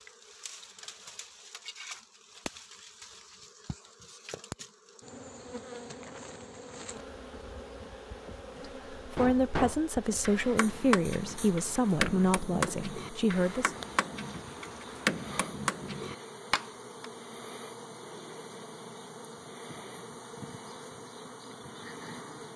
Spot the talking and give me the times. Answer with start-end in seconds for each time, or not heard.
8.9-13.8.